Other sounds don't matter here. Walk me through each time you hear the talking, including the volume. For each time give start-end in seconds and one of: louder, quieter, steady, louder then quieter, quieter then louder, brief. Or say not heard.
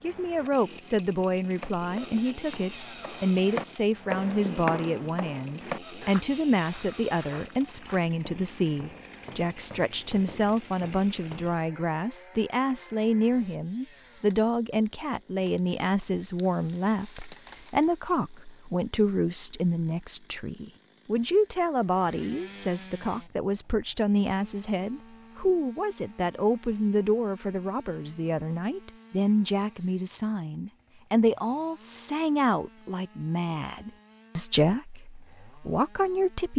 0.0-36.5 steady.